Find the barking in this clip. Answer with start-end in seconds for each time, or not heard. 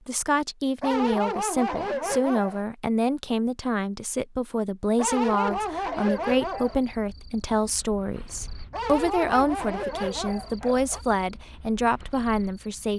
0.8-2.6, 5.0-7.0, 8.7-11.1.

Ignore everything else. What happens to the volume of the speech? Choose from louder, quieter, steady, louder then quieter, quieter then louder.
steady.